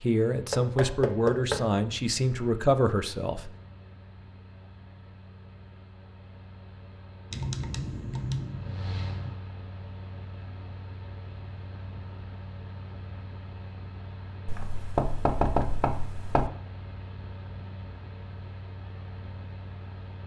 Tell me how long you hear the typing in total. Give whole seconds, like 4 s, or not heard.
2 s.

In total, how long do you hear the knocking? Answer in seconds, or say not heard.
3 s.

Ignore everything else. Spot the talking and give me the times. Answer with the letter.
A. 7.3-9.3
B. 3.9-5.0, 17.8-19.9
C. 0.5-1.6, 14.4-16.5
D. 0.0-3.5
D.